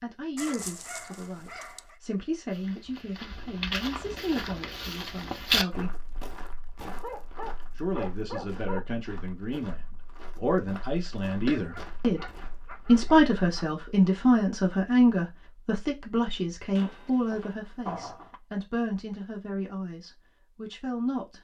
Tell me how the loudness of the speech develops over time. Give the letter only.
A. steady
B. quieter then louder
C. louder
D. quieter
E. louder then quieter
E.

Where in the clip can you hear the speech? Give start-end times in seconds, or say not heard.
0.0-6.0, 7.8-21.3.